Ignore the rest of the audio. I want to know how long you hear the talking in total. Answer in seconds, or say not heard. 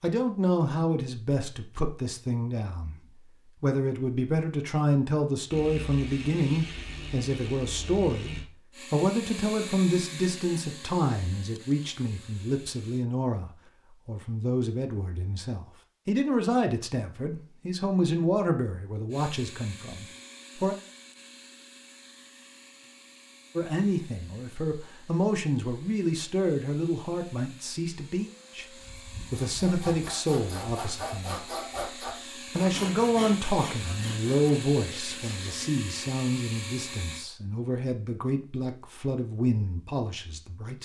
36 s.